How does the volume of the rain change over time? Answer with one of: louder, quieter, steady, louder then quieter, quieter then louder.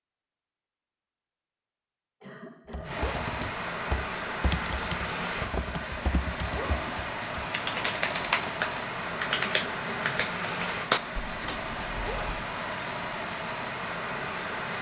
steady.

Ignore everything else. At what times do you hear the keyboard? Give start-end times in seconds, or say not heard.
2.7-12.5.